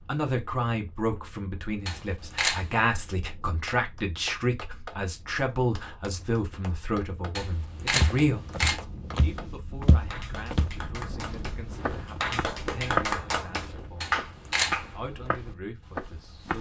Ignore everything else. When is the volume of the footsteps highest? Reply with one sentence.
The loudest moment of the footsteps is at 13 seconds.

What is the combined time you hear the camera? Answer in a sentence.
You can hear the camera for 3 seconds altogether.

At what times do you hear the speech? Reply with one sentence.
You can hear the speech from 0.0 to 8.5 s, from 9.2 to 14.2 s and from 14.9 to 16.5 s.